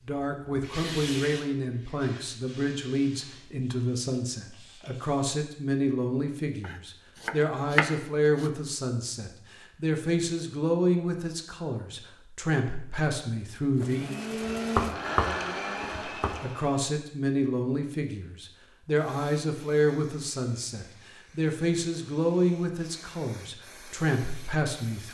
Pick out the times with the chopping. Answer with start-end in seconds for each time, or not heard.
6.6-8.5, 14.6-16.4.